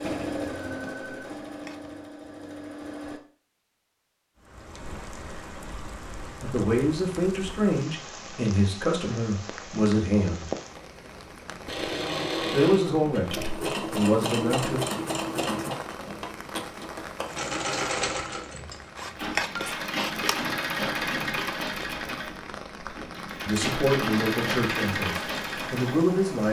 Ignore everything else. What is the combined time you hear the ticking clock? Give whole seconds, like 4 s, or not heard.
not heard.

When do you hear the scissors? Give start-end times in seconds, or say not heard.
1.5-1.9, 18.9-20.6.